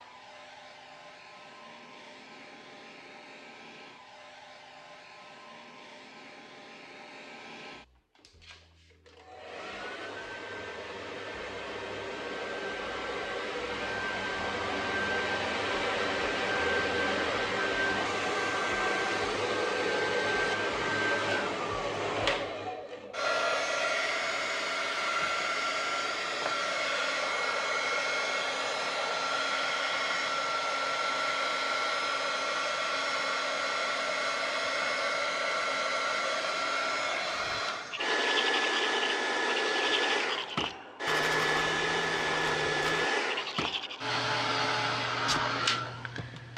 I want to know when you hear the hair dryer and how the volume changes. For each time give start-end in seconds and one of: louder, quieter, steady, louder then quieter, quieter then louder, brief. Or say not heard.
0.0-46.5 louder.